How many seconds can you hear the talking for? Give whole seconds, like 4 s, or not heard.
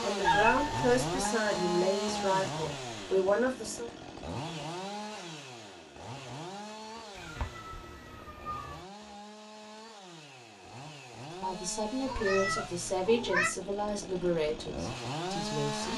8 s.